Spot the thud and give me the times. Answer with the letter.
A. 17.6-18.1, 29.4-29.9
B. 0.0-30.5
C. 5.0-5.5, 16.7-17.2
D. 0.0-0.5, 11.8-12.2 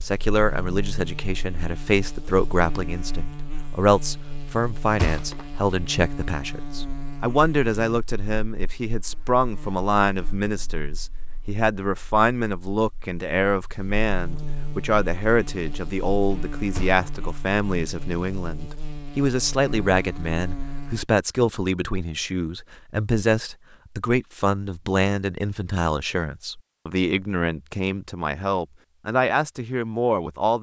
C.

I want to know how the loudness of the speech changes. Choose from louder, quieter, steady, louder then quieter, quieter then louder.
steady.